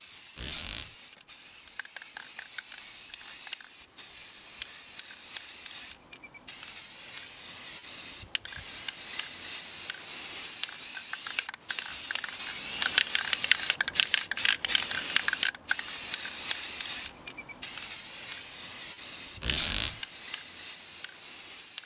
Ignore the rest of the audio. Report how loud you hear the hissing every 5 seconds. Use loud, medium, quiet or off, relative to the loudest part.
quiet, medium, loud, loud, medium.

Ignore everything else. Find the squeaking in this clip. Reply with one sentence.
The squeaking can be heard from 0.3 to 0.9 s and from 19.4 to 19.9 s.